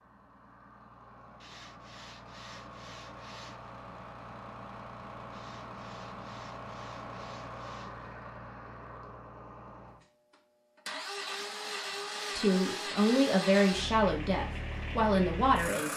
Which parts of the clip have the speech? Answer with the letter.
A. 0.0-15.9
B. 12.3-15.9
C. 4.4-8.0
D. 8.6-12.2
B.